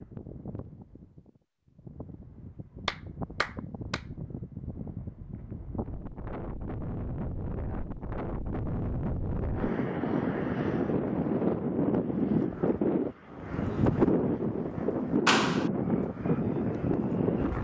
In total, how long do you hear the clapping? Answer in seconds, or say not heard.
2 s.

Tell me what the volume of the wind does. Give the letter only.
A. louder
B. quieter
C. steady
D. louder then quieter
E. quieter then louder
A.